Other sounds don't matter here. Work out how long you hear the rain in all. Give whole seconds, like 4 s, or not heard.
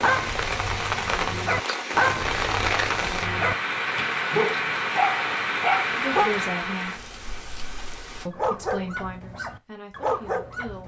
8 s.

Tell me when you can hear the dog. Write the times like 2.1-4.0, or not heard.
0.0-6.5, 8.3-10.8.